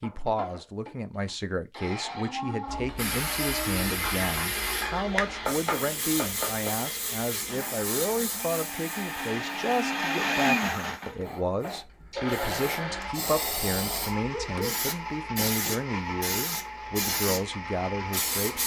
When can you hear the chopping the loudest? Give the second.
6 s.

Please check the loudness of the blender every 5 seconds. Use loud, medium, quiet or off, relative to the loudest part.
medium, medium, loud, medium.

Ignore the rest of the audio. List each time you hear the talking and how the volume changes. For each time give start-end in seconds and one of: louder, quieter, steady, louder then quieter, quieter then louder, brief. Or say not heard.
0.0-18.6 steady.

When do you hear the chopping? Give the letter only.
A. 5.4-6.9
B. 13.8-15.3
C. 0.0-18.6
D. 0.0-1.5
A.